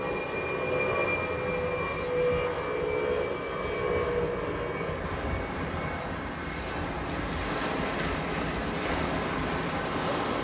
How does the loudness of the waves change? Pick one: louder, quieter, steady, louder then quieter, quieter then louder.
louder.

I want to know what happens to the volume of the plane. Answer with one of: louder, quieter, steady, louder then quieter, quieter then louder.
quieter.